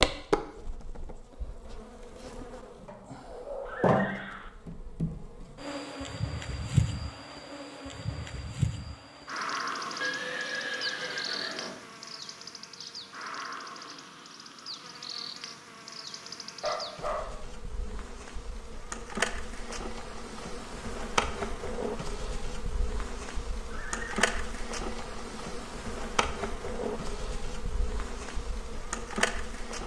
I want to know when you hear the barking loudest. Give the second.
17 s.